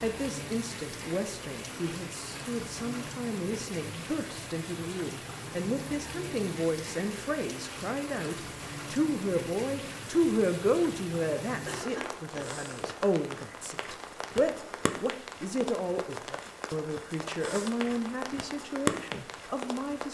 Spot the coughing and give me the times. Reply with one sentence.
The coughing can be heard from 11.7 to 12.4 s.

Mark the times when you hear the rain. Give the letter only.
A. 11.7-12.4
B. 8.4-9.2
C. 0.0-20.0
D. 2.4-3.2
C.